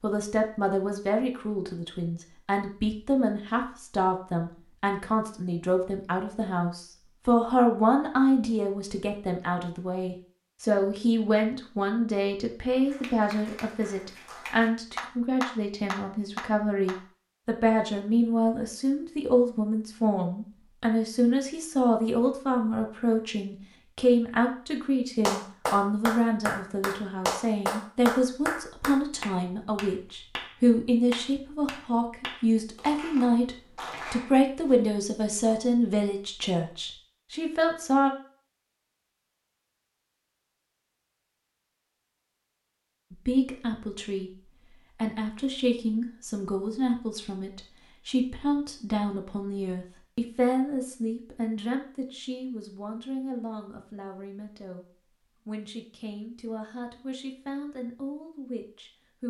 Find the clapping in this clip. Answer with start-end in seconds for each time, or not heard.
12.8-16.9, 25.2-34.8.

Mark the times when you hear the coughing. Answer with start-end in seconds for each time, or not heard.
not heard.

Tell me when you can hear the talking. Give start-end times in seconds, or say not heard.
0.0-38.1, 43.1-54.9, 55.5-59.2.